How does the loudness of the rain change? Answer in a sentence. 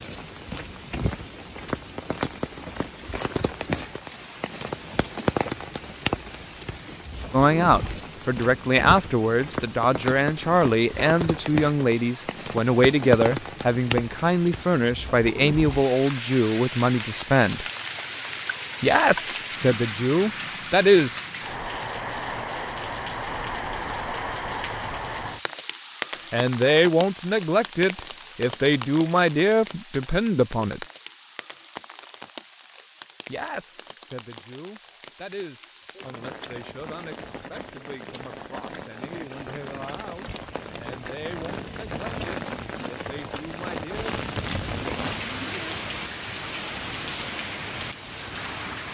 The volume of the rain goes down, then up.